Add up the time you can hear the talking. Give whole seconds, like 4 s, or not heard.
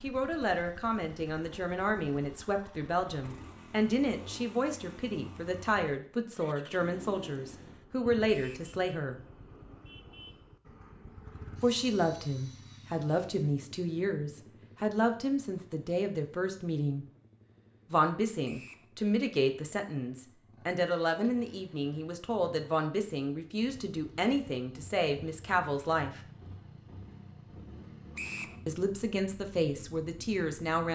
25 s.